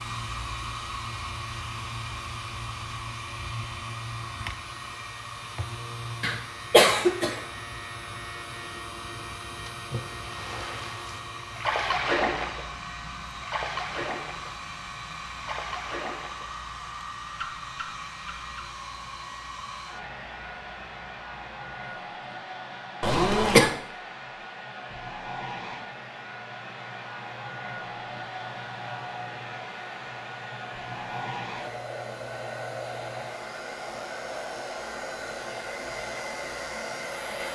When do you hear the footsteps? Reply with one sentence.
The footsteps can't be heard in this clip.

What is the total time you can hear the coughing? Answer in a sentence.
You can hear the coughing for 2 seconds altogether.